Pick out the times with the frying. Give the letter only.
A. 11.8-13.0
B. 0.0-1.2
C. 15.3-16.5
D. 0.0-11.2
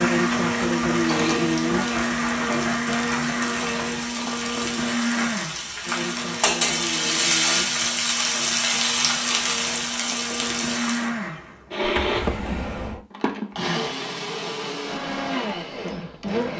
D.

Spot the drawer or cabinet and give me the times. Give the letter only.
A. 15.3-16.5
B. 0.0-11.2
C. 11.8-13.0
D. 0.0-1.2
C.